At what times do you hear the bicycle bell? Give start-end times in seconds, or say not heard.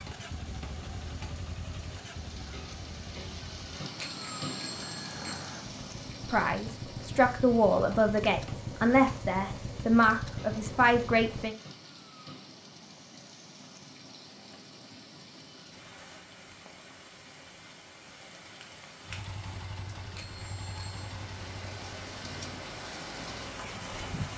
4.0-5.5, 20.1-21.1.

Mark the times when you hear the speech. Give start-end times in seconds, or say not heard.
6.2-11.6.